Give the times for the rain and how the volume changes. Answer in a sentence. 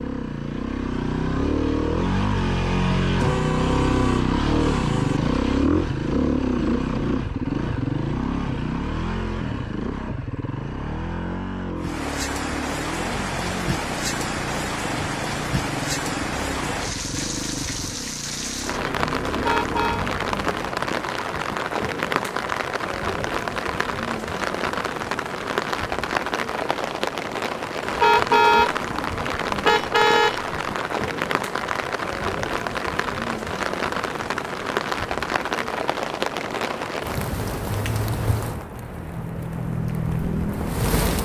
The rain can be heard from 11.8 to 41.2 s, at a steady volume.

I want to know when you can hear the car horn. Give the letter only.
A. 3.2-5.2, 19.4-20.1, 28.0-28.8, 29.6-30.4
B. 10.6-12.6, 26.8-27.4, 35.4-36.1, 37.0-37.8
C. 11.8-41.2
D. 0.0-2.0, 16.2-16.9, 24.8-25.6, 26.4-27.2
A.